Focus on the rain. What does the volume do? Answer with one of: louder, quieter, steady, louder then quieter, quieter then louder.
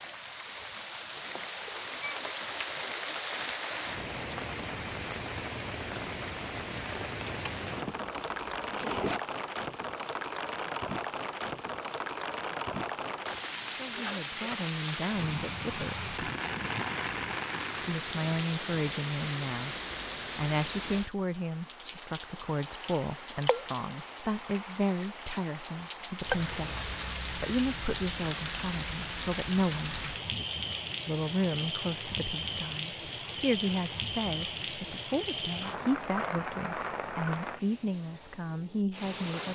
steady.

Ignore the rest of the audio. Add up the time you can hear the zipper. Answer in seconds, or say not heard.
2 s.